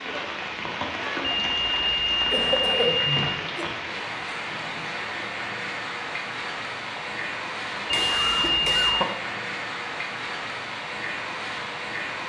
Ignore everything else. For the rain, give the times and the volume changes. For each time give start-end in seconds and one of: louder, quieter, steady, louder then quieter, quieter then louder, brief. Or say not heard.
0.0-12.2 steady.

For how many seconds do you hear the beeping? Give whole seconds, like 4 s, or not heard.
3 s.